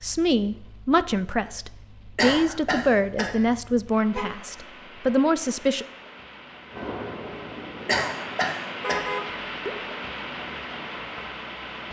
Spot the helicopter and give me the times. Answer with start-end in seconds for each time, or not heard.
6.7-8.4.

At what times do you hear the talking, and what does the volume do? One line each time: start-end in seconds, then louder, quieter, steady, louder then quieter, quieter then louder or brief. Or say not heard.
0.0-5.8 steady.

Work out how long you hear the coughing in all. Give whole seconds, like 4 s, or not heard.
2 s.